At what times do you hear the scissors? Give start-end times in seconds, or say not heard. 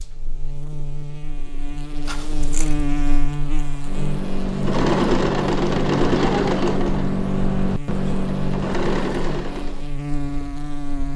2.0-2.9.